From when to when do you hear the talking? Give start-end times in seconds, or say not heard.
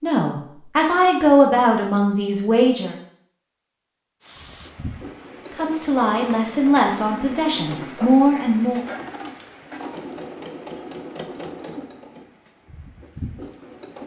0.0-3.0, 5.5-8.8.